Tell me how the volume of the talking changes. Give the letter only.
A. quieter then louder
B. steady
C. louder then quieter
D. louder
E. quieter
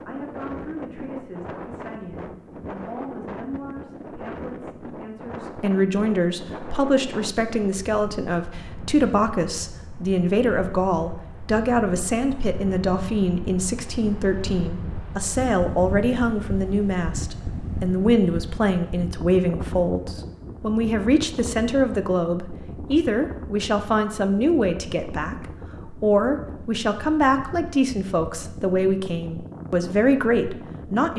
D.